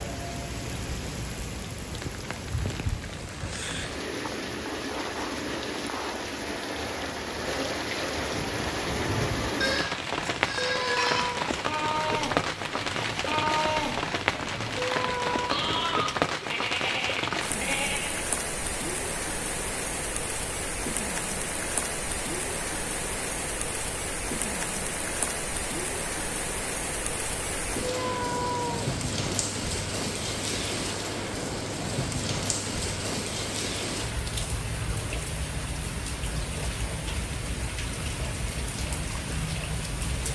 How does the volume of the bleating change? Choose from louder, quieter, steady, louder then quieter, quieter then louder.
steady.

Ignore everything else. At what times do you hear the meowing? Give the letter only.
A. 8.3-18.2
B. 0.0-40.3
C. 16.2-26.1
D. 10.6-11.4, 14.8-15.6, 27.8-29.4
D.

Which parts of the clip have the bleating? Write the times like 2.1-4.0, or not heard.
8.3-18.2.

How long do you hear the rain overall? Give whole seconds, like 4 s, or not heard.
40 s.